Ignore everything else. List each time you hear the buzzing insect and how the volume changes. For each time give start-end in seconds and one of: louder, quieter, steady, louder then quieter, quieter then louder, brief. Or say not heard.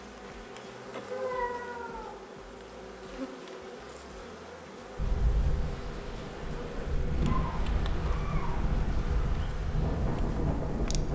0.0-11.1 steady.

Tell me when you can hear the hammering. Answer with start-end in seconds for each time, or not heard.
not heard.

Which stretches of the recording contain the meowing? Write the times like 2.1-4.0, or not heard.
1.1-2.2, 7.2-9.5.